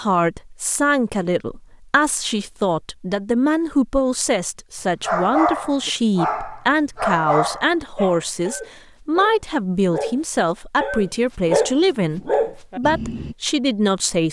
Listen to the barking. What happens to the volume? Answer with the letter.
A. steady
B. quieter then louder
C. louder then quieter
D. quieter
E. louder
B.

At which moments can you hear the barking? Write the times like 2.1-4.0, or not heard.
5.0-13.3.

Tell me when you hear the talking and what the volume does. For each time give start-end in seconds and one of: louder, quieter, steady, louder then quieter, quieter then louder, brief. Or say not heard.
0.0-14.2 steady.